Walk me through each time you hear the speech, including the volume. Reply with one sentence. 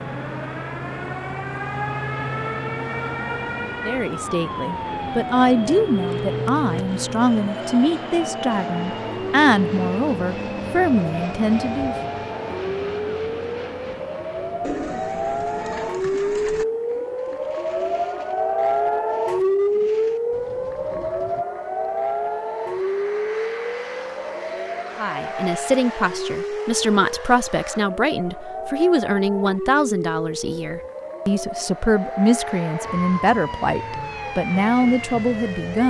The speech can be heard from 3.9 to 11.9 s, at a steady volume; and from 24.9 to 35.8 s, at a steady volume.